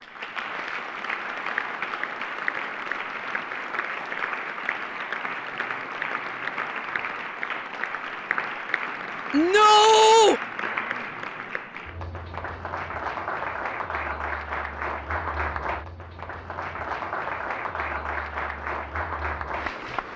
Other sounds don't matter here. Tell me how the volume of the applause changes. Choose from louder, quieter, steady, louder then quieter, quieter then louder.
steady.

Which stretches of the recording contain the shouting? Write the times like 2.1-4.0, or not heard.
9.3-10.4.